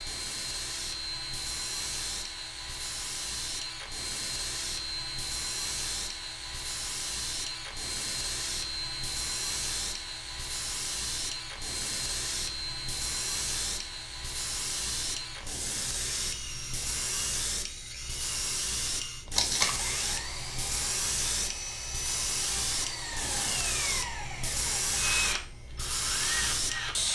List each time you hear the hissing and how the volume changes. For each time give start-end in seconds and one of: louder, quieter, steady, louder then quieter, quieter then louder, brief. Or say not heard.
0.0-27.1 louder.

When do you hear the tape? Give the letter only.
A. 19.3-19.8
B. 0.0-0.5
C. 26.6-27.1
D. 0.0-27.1
A.